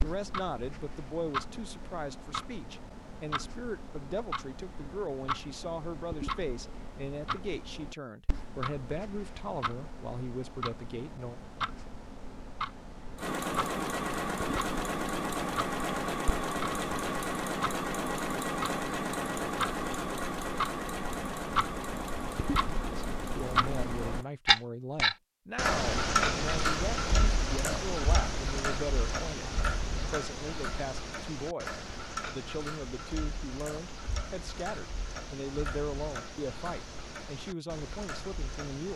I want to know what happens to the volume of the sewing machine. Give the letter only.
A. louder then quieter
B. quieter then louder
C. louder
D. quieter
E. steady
D.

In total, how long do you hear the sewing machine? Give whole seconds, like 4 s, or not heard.
11 s.